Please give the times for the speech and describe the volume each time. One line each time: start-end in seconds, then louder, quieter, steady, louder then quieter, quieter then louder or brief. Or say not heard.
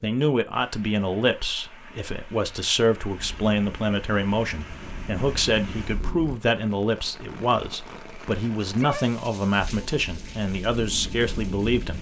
0.0-11.9 steady.